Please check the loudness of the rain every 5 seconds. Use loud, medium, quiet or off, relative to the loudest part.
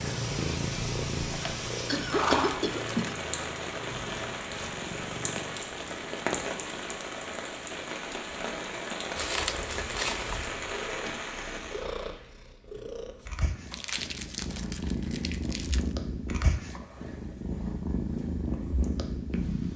loud, loud, loud, off.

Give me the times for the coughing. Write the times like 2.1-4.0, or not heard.
1.3-3.3.